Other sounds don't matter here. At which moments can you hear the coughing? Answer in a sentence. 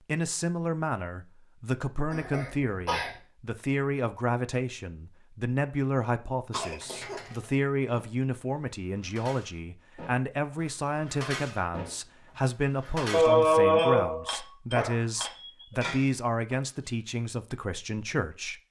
The coughing can be heard from 2.1 to 3.1 s, from 6.5 to 7.4 s and from 13.1 to 15.5 s.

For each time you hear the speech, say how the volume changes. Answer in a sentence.
You can hear the speech from 0.1 to 18.6 s, at a steady volume.